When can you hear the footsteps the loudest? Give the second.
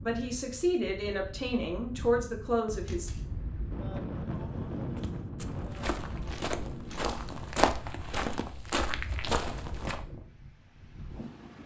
8 s.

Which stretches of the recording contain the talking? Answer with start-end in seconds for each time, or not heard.
0.0-3.1.